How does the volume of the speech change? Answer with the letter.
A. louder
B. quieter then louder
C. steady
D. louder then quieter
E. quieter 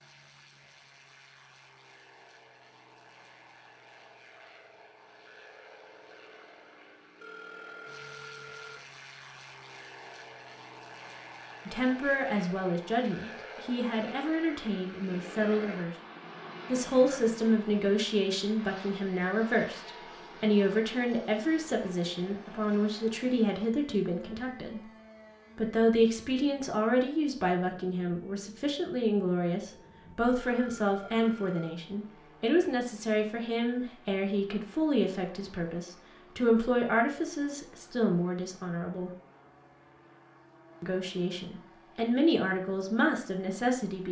C.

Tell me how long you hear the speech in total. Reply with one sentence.
The speech can be heard for 29 seconds in total.